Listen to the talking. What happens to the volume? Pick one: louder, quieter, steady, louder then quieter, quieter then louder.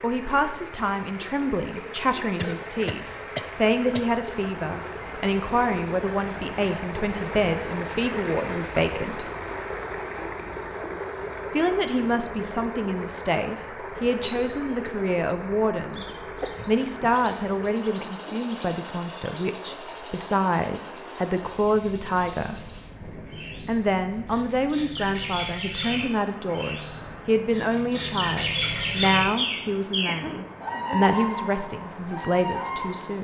steady.